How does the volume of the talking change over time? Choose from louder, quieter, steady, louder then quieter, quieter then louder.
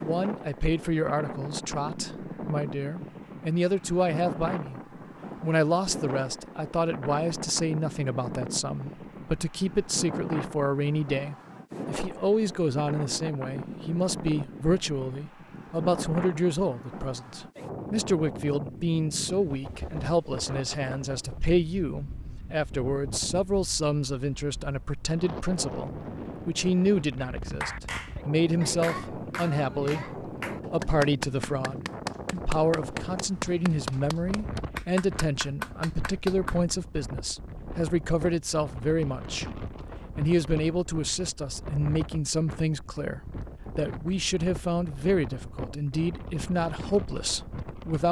steady.